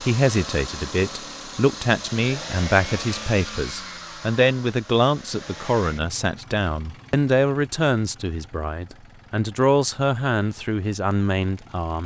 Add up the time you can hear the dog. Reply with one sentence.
You can't hear the dog here.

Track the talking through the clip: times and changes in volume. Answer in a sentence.
You can hear the talking from 0.0 to 12.0 s, at a steady volume.